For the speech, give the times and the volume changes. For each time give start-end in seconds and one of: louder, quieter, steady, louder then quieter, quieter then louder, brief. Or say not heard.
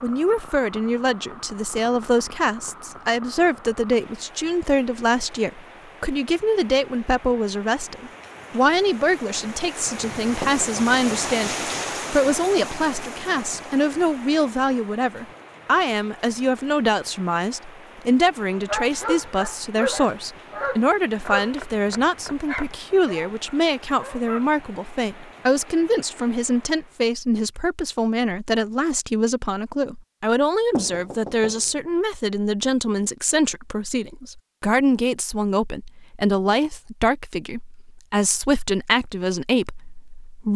0.0-40.5 steady.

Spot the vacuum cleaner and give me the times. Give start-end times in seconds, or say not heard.
not heard.